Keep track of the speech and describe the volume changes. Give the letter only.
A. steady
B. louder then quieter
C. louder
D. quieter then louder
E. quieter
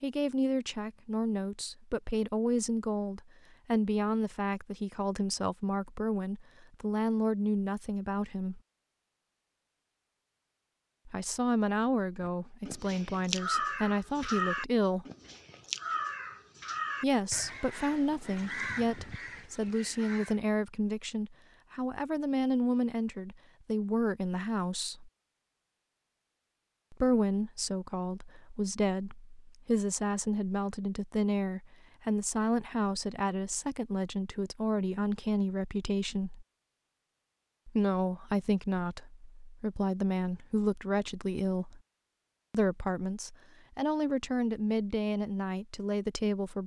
A.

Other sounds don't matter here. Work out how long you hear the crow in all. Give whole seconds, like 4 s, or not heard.
8 s.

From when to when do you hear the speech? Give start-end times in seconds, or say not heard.
0.0-8.6, 11.1-15.1, 17.0-25.1, 26.9-36.5, 37.6-41.8, 42.5-46.6.